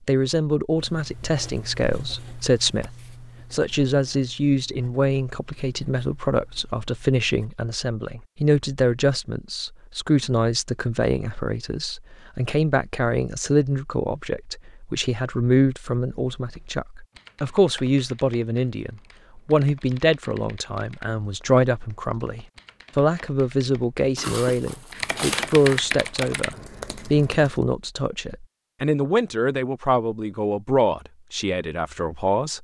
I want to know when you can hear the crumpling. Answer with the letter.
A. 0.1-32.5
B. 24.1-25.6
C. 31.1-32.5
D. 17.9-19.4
B.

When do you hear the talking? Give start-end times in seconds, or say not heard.
0.1-32.5.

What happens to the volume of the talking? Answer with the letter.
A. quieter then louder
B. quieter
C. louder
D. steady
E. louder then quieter
D.